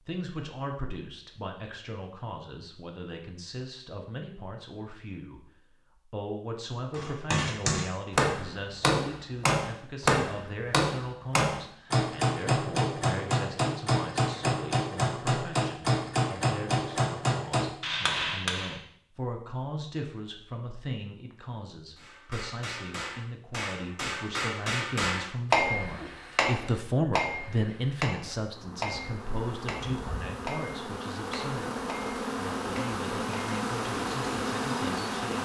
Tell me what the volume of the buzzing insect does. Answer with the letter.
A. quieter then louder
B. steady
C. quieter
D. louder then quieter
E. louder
E.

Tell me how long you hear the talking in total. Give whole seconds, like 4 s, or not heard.
35 s.